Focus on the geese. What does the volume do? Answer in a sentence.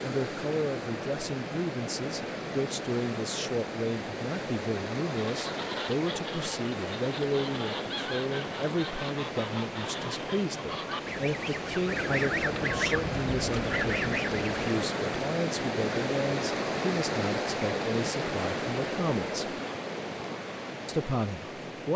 The loudness of the geese goes up.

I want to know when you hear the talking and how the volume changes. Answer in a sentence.
You can hear the talking from 0.0 to 19.6 s, at a steady volume; and briefly from 20.9 to 21.9 s.